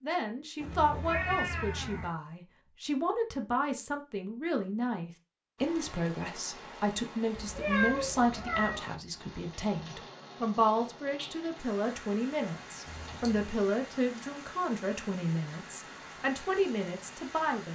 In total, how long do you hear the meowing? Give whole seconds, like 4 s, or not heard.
4 s.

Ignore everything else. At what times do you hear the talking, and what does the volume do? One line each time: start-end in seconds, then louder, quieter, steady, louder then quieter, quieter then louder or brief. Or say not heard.
0.0-17.7 steady.